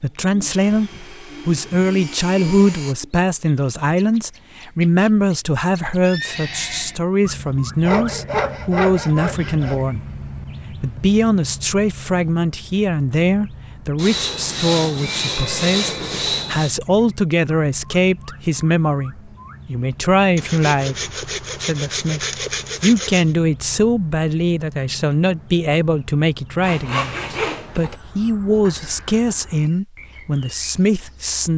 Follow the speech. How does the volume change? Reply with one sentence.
The volume of the speech stays about the same.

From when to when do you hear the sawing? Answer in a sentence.
You can hear the sawing from 0.5 to 3.0 s, from 7.8 to 9.8 s, from 13.9 to 16.8 s, from 20.4 to 23.3 s and from 26.6 to 27.9 s.